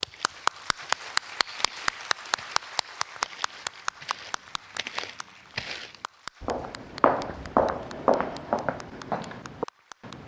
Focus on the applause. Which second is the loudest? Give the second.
1 s.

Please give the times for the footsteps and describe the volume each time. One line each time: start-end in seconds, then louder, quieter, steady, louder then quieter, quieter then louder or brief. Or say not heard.
0.1-10.2 louder.